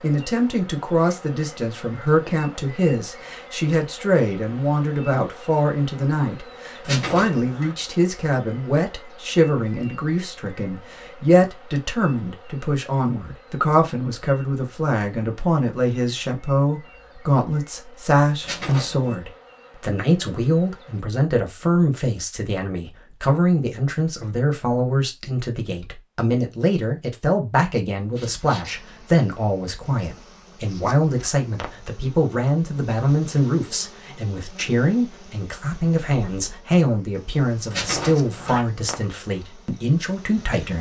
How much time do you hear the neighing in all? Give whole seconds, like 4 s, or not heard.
3 s.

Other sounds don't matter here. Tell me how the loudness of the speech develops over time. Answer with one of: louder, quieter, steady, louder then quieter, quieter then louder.
steady.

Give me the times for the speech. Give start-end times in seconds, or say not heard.
0.0-40.7.